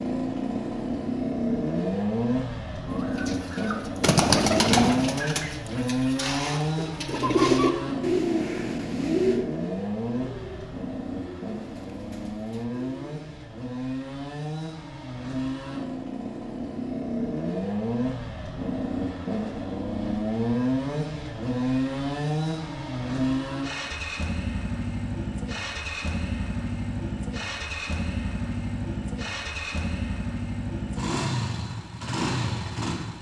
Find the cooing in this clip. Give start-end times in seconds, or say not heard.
2.9-13.2.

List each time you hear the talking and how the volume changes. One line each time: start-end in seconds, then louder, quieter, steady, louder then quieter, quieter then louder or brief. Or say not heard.
not heard.